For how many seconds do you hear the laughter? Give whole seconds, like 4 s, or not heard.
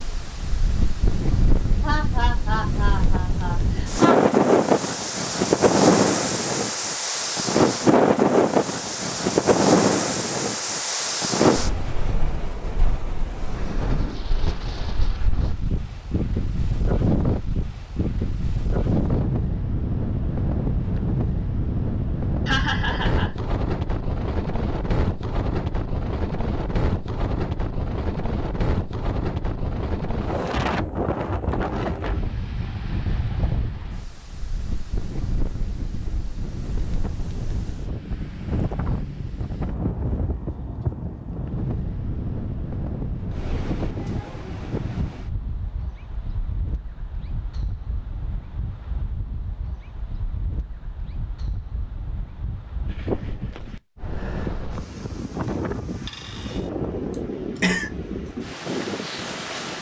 4 s.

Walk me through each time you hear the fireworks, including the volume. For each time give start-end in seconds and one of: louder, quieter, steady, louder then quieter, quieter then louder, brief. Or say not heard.
not heard.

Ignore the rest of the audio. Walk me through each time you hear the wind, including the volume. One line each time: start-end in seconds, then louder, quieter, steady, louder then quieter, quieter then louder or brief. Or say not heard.
0.0-59.7 quieter.